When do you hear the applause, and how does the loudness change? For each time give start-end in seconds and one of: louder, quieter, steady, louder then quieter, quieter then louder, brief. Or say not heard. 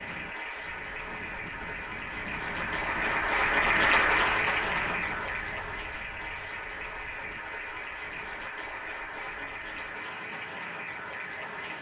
0.0-11.7 louder then quieter.